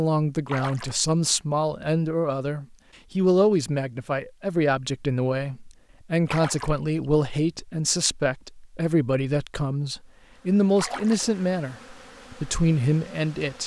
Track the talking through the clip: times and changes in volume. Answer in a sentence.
The talking can be heard from 0.0 to 13.6 s, at a steady volume.